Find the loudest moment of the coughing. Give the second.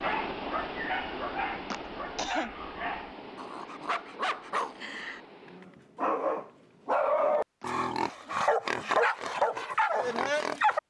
2 s.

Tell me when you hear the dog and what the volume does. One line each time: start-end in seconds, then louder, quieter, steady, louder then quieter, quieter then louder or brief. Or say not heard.
0.0-10.8 louder.